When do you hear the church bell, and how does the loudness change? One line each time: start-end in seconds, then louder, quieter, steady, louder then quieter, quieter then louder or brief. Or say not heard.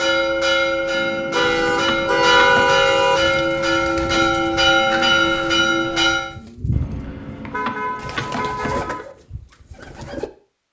0.0-6.3 steady.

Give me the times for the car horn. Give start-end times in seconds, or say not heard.
1.3-3.2, 7.5-9.1.